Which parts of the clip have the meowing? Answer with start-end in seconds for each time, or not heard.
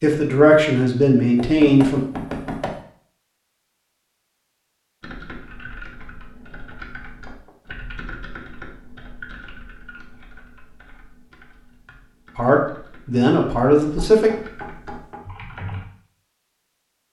not heard.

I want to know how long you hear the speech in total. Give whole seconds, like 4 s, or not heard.
4 s.